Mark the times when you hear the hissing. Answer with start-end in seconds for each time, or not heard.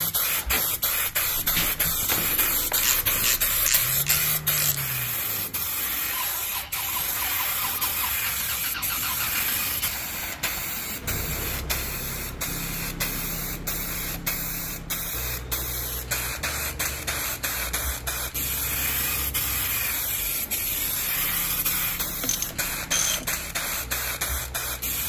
0.0-25.0.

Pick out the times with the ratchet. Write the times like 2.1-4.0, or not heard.
2.8-4.8, 22.2-23.4.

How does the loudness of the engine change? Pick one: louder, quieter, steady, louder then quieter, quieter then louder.
quieter.